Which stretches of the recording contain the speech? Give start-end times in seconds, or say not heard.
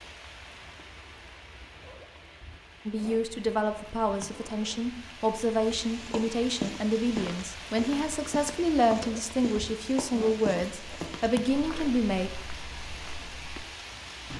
2.9-12.3.